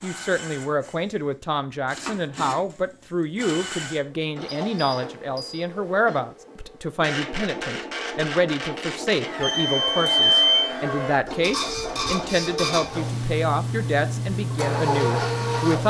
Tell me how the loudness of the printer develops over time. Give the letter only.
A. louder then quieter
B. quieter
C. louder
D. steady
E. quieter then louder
C.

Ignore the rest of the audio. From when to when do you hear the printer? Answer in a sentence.
You can hear the printer from 0.0 to 15.8 s.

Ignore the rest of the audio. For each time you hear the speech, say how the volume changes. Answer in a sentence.
You can hear the speech from 0.0 to 15.8 s, at a steady volume.